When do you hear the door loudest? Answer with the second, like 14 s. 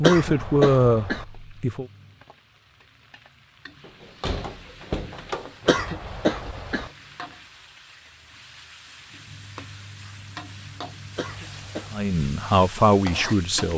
5 s.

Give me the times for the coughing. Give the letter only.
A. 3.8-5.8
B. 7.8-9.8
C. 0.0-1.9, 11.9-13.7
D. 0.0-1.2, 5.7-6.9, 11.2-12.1
D.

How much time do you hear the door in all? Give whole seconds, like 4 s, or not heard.
2 s.